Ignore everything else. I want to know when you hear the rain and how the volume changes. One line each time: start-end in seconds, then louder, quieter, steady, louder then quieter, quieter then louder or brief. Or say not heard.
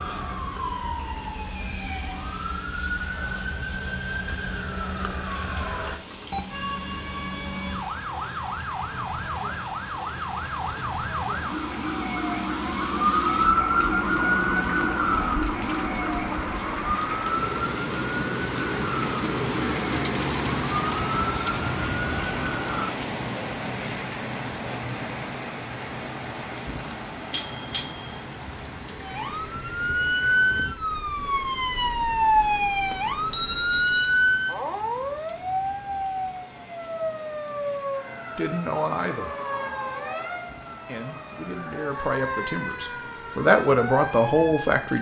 0.0-44.9 louder then quieter.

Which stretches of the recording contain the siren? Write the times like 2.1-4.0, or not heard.
0.0-22.9, 29.0-44.9.